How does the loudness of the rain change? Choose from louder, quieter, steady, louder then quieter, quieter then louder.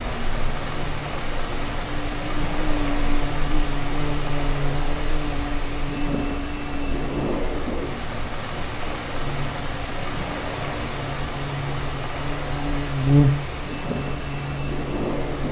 steady.